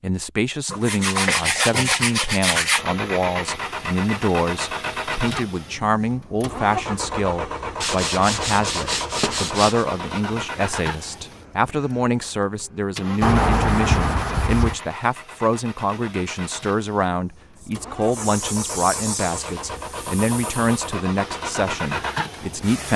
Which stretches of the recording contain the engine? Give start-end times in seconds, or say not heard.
2.8-22.9.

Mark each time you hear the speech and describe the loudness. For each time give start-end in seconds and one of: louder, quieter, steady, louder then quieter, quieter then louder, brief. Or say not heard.
0.0-22.9 steady.